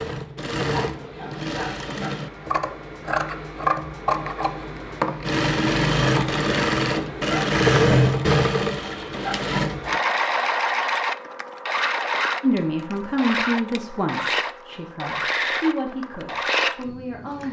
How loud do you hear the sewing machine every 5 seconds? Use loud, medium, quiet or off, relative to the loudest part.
medium, loud, medium, medium.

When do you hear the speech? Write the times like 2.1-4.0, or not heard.
12.4-17.4.